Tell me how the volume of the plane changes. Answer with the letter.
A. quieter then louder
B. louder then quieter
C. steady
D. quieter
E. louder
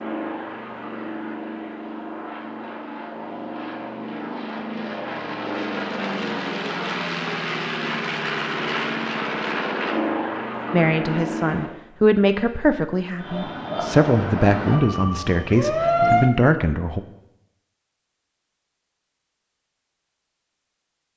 E.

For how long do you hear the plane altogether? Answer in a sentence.
The plane can be heard for 12 seconds in total.